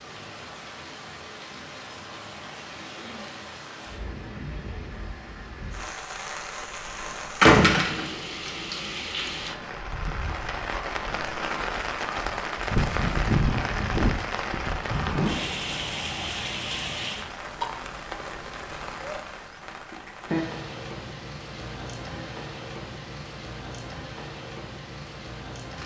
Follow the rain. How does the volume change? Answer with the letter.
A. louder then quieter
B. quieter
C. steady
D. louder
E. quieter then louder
A.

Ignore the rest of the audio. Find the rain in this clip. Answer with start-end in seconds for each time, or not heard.
0.0-25.8.